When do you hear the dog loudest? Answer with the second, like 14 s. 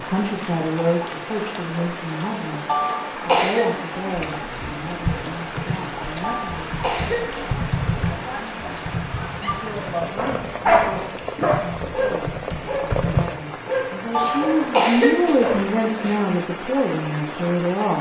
11 s.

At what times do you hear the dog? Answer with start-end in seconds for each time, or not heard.
9.2-15.7.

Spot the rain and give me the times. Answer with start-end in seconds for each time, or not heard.
0.0-17.9.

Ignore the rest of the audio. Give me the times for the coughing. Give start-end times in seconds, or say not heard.
2.6-3.6, 6.2-7.5, 14.1-16.1.